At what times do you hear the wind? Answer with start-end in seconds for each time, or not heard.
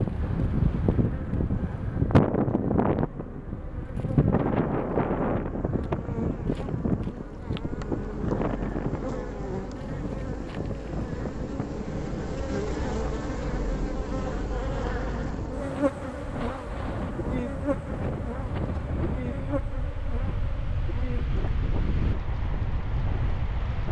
0.0-23.8.